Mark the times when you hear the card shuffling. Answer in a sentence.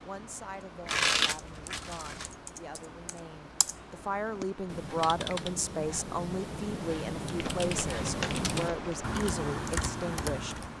The card shuffling can be heard from 0.8 to 2.4 s and from 7.3 to 8.9 s.